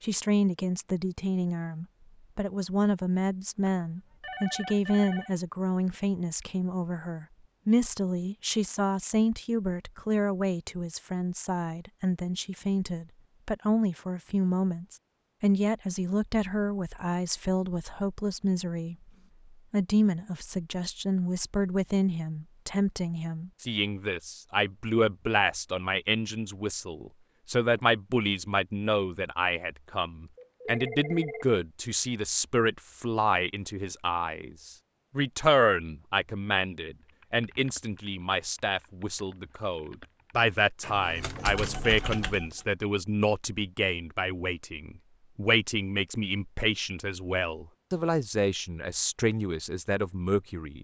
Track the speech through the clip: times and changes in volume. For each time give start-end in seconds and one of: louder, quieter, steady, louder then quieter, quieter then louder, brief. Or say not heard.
0.0-18.9 steady
19.7-50.8 steady.